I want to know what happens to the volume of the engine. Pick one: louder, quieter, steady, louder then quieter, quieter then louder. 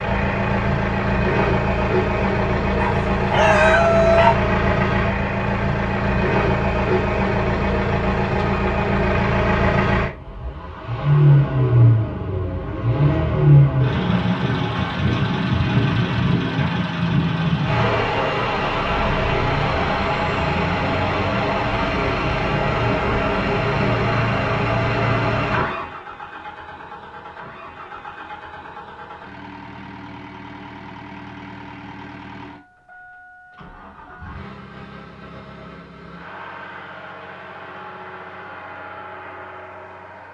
quieter.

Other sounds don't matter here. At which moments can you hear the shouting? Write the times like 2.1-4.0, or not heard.
3.4-4.3.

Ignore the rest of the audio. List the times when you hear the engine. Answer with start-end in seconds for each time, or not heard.
0.0-40.2.